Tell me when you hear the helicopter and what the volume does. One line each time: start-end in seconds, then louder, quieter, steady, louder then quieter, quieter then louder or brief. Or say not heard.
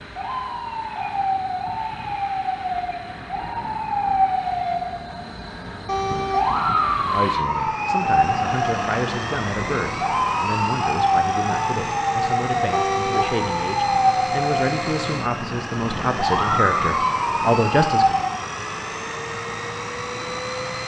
0.0-20.8 louder.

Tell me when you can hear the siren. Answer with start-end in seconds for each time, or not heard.
0.0-18.4.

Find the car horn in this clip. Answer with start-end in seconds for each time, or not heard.
5.8-6.5, 12.7-13.3.